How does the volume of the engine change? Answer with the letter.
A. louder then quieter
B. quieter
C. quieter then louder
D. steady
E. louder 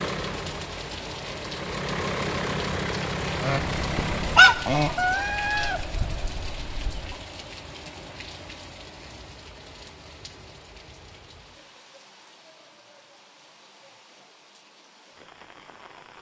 E.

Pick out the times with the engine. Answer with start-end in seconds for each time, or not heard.
0.0-4.7.